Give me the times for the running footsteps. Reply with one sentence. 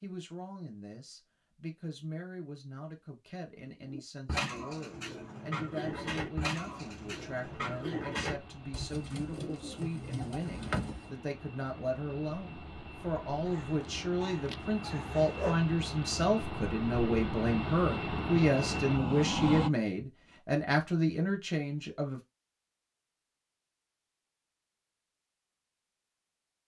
The running footsteps can't be heard in this clip.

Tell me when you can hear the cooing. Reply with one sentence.
You can hear the cooing from 3.7 to 11.1 s.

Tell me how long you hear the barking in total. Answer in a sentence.
You can hear the barking for 2 seconds altogether.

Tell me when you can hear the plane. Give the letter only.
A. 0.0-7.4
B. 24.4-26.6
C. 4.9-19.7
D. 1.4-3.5
C.